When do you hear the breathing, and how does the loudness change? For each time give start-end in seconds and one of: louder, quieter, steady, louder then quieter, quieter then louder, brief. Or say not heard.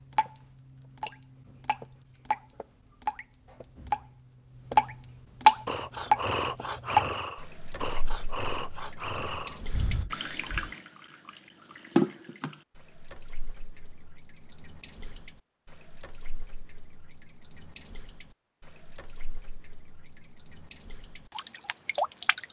5.7-10.7 quieter.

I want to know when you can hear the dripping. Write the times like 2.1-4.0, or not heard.
0.0-22.4.